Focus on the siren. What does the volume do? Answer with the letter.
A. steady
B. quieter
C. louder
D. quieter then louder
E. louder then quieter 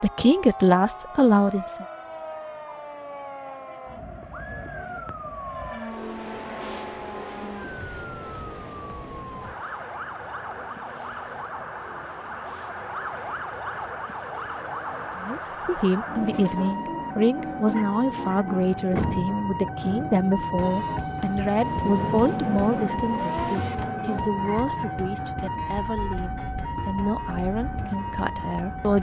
C.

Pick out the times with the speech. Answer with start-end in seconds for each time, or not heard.
0.0-1.9, 15.2-28.9.